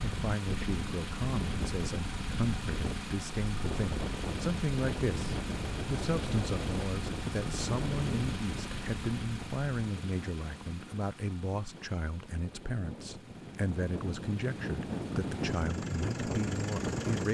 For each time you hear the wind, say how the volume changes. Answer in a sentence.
The wind can be heard from 0.0 to 17.2 s, getting quieter then louder.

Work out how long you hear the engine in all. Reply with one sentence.
You can hear the engine for 17 seconds altogether.